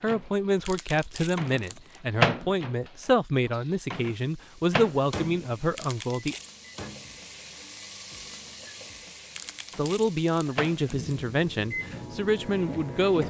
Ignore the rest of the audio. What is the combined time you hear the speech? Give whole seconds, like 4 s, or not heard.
10 s.